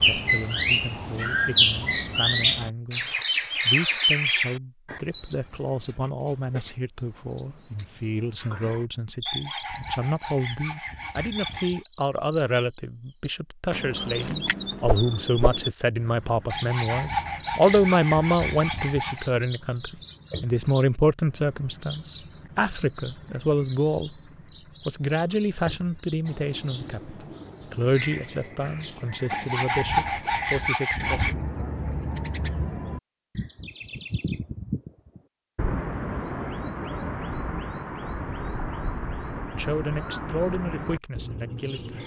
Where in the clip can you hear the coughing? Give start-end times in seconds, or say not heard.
not heard.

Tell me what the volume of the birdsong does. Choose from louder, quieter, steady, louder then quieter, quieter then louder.
quieter.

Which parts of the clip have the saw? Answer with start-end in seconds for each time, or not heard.
9.2-11.8, 16.5-19.3, 29.3-31.4.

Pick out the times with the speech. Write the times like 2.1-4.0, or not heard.
0.0-24.2, 24.9-31.4, 39.5-42.0.